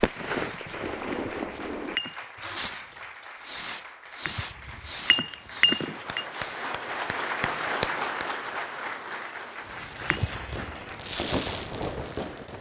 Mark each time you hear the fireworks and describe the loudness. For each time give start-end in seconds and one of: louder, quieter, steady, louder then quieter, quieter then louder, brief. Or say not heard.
0.0-7.1 quieter
9.7-12.5 brief.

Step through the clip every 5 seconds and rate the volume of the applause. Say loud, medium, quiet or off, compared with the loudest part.
medium, loud, medium.